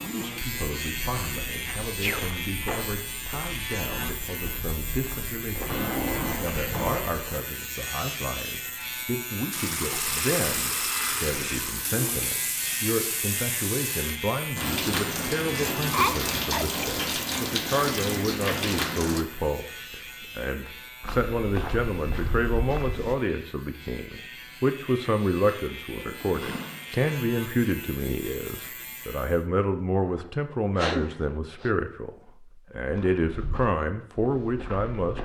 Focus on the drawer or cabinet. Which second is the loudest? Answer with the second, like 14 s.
6 s.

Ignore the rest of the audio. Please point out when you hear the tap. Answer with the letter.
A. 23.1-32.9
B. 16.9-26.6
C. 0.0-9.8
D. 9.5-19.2
D.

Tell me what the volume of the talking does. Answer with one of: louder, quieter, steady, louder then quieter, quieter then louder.
louder.